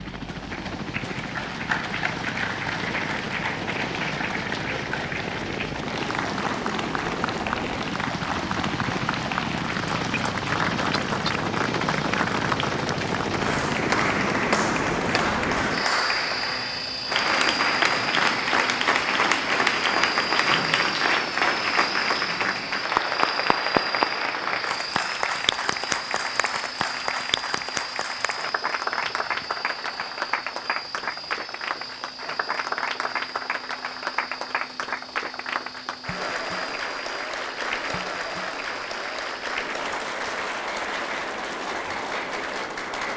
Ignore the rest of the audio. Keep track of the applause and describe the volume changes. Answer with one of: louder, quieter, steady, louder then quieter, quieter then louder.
louder then quieter.